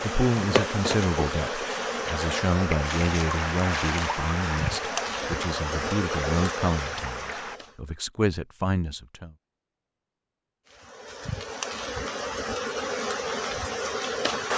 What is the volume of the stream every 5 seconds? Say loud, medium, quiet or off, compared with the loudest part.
loud, loud, off.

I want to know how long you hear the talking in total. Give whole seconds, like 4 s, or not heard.
9 s.